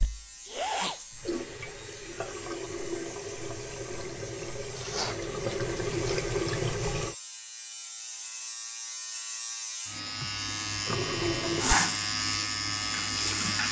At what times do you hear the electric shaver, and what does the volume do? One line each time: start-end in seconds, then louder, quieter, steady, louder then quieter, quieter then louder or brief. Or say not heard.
0.0-13.6 louder.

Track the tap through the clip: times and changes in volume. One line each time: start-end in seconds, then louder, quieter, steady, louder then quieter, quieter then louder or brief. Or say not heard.
0.0-7.2 louder
10.8-13.6 brief.